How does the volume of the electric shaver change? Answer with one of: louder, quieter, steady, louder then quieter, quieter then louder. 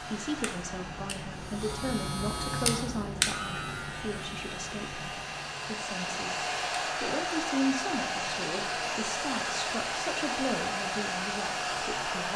quieter.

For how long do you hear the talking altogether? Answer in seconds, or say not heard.
12 s.